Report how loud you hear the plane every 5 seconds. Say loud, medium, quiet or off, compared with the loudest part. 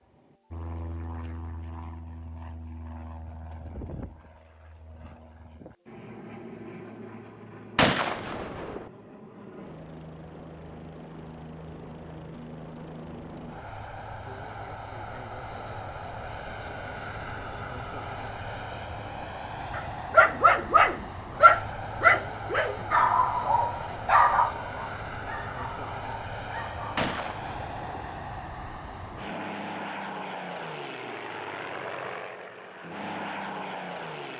medium, medium, medium, loud, loud, loud, loud.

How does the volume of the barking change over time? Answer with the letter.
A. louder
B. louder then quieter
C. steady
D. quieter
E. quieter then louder
D.